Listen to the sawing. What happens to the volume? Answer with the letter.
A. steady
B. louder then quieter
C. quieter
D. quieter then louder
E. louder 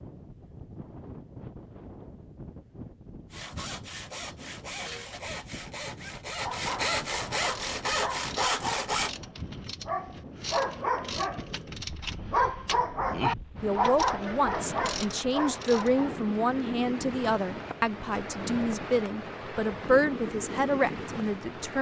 E.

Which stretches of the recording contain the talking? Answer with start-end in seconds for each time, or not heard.
13.6-21.7.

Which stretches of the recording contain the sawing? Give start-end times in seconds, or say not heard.
3.3-9.1.